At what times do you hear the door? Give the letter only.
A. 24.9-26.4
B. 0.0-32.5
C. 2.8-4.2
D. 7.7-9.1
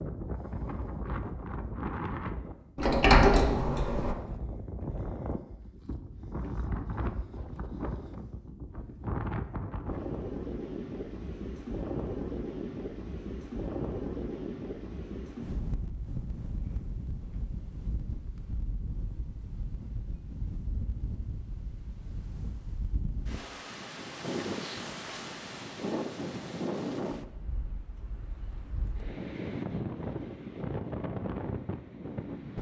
C.